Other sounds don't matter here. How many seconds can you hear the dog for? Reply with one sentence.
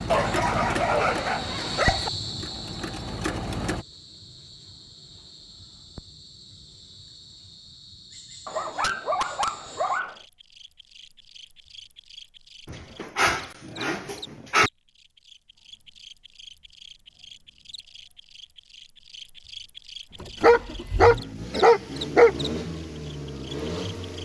You can hear the dog for 8 seconds altogether.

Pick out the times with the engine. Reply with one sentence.
You can hear the engine from 0.0 to 3.9 s and from 20.1 to 24.2 s.